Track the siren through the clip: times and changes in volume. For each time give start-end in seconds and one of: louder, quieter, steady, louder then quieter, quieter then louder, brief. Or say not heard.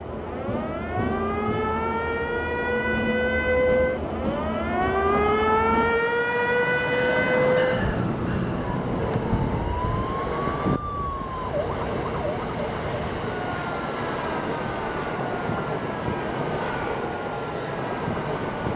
0.1-18.7 quieter.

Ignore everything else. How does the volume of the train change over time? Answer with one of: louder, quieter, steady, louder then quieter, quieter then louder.
steady.